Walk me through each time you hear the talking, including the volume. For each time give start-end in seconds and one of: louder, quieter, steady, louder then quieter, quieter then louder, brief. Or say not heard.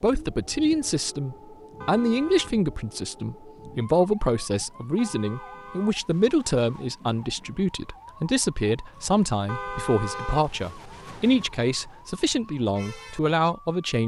0.0-14.0 steady.